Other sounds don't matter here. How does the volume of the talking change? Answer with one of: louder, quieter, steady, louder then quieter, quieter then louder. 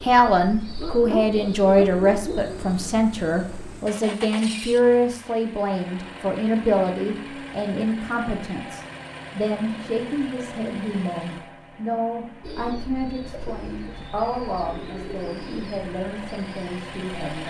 quieter.